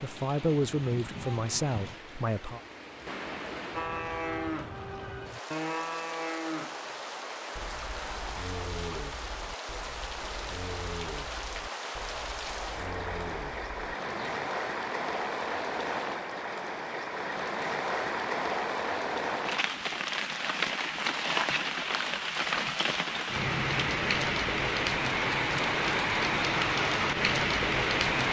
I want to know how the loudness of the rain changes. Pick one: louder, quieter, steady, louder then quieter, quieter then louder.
louder.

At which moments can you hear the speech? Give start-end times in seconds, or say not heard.
0.0-2.6.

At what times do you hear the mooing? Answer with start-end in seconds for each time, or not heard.
3.8-4.8, 5.5-6.9, 7.5-14.5.